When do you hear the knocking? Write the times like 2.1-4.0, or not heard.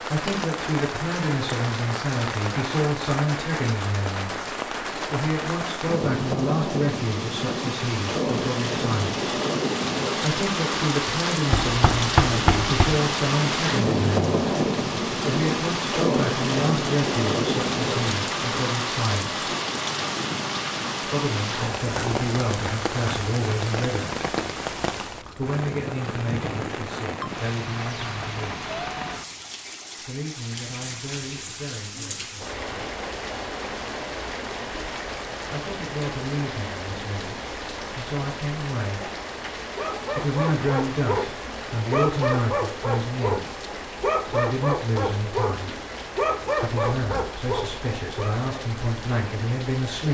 11.5-13.0.